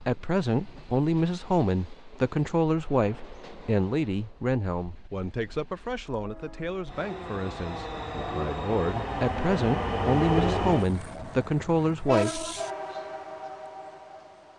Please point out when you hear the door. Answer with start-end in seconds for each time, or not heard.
not heard.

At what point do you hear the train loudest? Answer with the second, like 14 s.
10 s.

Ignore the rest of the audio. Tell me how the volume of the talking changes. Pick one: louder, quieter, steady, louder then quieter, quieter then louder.
quieter then louder.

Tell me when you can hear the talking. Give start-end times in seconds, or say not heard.
0.1-12.4.